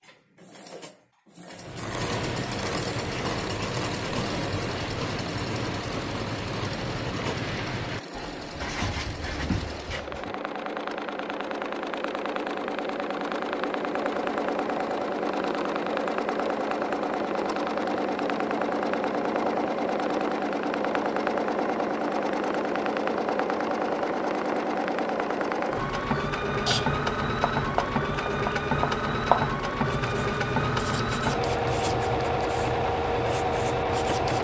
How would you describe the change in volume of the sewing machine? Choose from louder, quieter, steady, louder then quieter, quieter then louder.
louder.